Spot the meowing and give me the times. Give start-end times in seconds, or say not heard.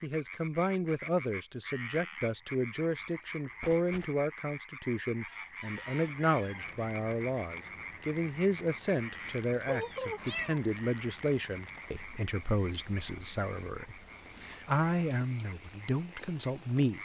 3.0-4.1, 9.7-10.7.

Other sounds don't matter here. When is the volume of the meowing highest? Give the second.
10 s.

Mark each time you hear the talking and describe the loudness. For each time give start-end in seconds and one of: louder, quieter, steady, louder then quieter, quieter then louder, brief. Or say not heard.
0.0-17.0 steady.